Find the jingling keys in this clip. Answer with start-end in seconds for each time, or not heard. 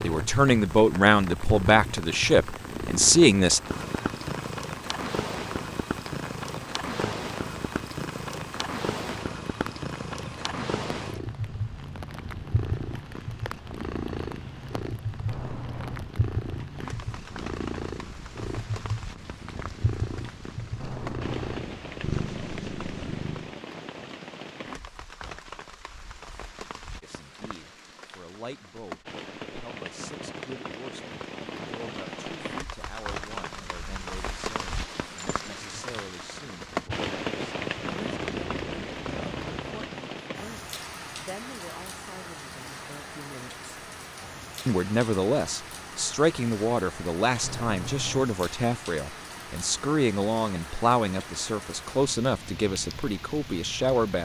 15.2-16.1, 20.8-21.7, 47.4-48.3.